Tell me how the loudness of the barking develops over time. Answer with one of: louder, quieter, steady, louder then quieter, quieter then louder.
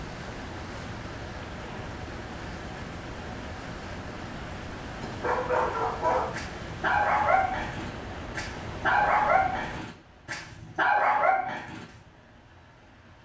steady.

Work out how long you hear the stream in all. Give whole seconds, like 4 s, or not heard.
13 s.